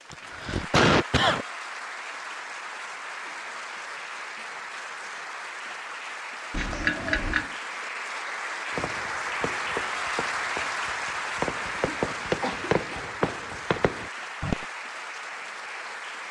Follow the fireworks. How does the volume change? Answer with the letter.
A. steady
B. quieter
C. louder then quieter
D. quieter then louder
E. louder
E.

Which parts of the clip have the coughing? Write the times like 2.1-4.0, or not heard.
0.1-1.4, 6.5-7.5, 11.8-13.1.